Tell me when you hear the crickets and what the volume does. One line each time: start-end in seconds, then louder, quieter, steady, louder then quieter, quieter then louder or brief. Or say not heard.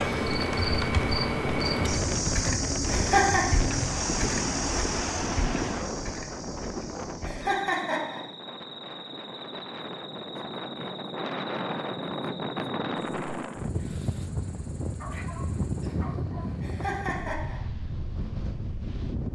0.0-15.9 quieter.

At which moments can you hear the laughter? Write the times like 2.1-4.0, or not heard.
2.9-3.5, 7.2-8.2, 16.6-17.6.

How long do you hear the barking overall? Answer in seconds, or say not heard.
2 s.